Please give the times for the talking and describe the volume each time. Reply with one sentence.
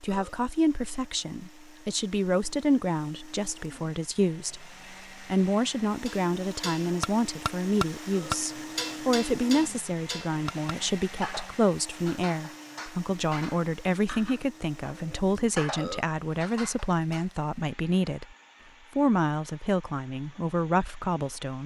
You can hear the talking from 0.0 to 18.2 s, at a steady volume; and briefly from 18.9 to 21.6 s.